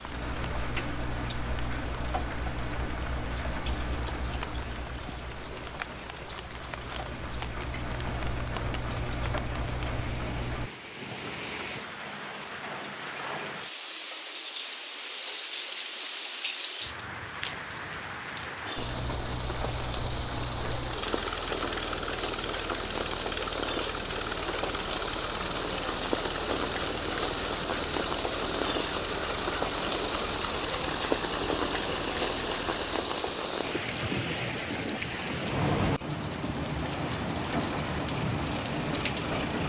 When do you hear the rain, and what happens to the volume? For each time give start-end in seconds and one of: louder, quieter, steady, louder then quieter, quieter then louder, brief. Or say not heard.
0.0-39.6 louder.